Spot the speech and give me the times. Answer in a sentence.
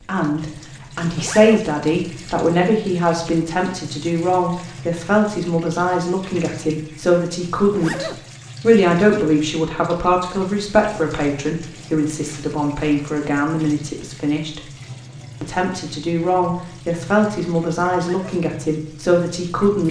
The speech can be heard from 0.1 to 14.6 s and from 15.4 to 19.8 s.